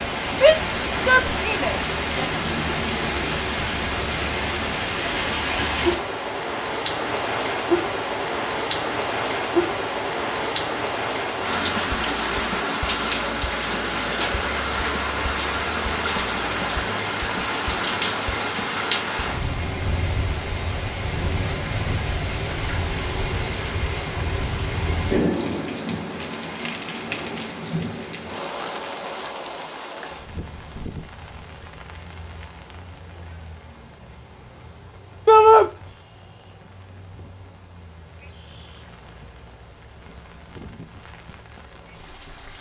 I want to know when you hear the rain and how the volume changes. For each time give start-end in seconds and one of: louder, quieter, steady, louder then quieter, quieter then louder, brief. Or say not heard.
0.0-42.5 quieter.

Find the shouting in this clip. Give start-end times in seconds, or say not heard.
0.3-2.3, 35.2-35.7.